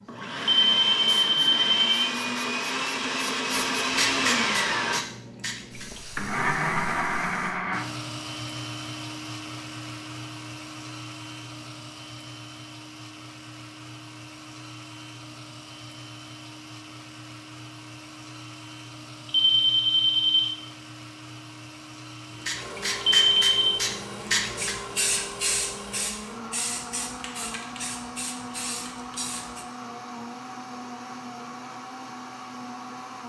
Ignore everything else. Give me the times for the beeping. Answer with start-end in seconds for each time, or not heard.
0.4-2.1, 19.2-20.5, 23.1-23.8.